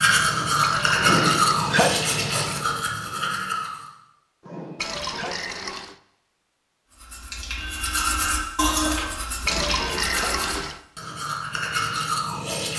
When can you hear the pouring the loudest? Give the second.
10 s.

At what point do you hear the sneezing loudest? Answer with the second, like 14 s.
2 s.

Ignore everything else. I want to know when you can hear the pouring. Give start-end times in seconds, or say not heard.
0.6-2.6, 4.8-6.0, 9.4-10.8.